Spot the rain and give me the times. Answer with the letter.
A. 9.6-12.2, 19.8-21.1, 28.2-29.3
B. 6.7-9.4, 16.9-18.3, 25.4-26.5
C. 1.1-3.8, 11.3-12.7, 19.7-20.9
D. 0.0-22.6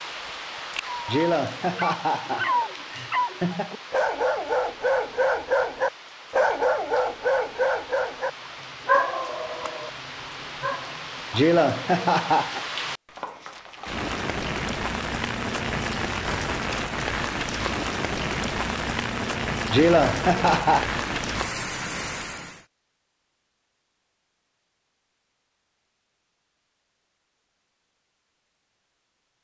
D.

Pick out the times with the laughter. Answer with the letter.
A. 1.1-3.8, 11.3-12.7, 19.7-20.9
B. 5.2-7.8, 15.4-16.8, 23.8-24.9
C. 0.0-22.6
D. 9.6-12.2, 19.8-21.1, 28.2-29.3
A.